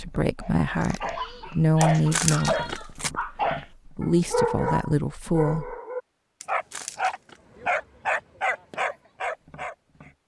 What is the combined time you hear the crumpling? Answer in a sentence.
You can hear the crumpling for 2 seconds altogether.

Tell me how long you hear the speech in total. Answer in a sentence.
You can hear the speech for 6 seconds altogether.